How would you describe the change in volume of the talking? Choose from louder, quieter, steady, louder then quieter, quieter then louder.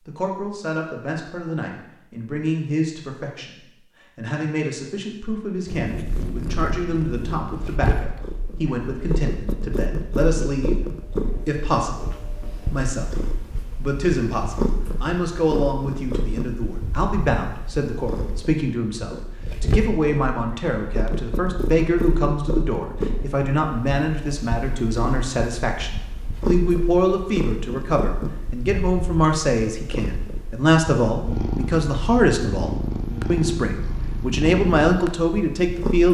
louder.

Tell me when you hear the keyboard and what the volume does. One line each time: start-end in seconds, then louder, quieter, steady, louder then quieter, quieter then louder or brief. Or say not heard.
not heard.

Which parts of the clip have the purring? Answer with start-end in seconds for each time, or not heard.
5.7-36.1.